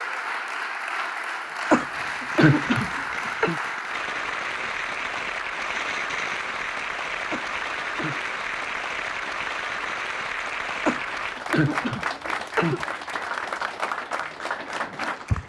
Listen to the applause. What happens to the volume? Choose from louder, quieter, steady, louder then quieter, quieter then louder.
steady.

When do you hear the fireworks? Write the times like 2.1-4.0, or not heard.
1.9-11.0.